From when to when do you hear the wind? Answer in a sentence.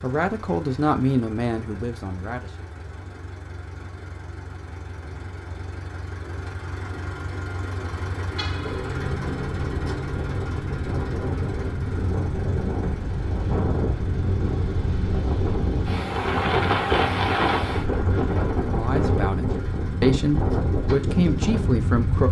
The wind can be heard from 8.6 to 22.2 s.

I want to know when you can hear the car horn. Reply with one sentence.
The car horn can be heard from 8.3 to 9.0 s.